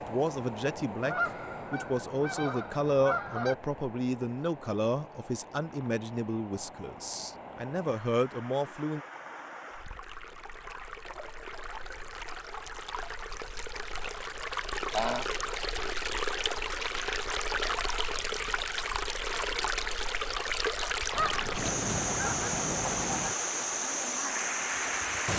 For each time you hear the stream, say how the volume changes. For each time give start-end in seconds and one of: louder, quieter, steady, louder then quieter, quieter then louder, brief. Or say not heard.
0.0-25.3 louder.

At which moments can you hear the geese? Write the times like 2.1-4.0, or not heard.
1.0-3.5, 14.9-15.3, 21.1-23.4.